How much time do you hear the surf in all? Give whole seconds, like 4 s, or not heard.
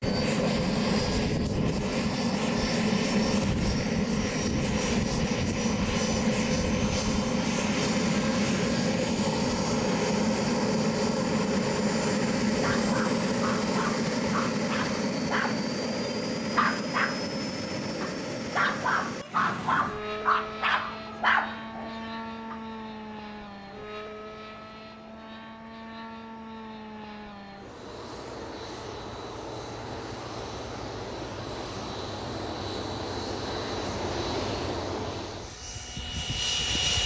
not heard.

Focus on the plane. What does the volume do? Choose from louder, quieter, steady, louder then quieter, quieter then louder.
quieter then louder.